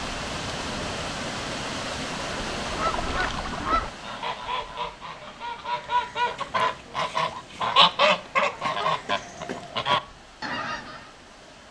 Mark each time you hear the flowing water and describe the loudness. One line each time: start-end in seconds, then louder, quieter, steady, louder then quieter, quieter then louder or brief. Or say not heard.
0.0-11.6 quieter.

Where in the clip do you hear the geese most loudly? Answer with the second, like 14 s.
8 s.